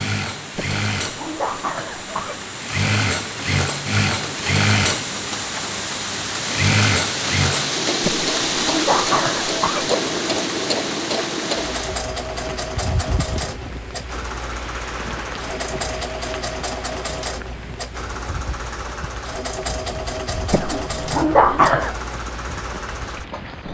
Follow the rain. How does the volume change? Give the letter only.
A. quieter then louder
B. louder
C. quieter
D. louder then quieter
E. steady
D.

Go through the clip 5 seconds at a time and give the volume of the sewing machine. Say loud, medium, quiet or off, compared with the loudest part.
loud, loud, loud, medium, medium.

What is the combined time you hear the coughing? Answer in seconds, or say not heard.
5 s.